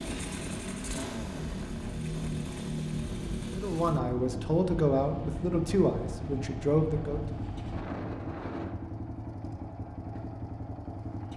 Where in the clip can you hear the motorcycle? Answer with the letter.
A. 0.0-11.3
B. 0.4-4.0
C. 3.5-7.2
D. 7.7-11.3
A.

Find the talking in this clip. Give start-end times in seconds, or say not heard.
3.5-7.2.